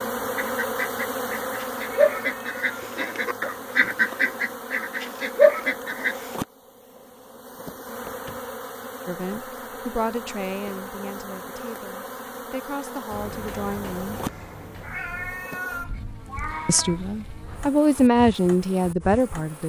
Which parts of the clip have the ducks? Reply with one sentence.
You can hear the ducks from 0.3 to 6.2 s.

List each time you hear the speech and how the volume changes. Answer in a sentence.
You can hear the speech from 9.1 to 14.2 s, getting quieter then louder; and briefly from 16.6 to 19.6 s.